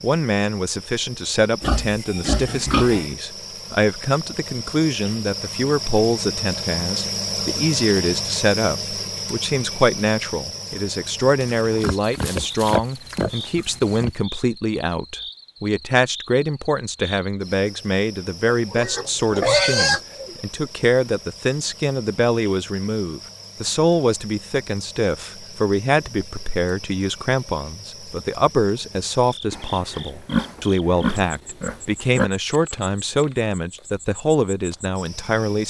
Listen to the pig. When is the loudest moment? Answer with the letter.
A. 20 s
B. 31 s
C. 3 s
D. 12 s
A.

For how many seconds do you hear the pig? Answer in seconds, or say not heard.
9 s.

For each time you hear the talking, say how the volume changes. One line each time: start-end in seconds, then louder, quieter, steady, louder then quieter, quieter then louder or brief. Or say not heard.
0.0-35.6 steady.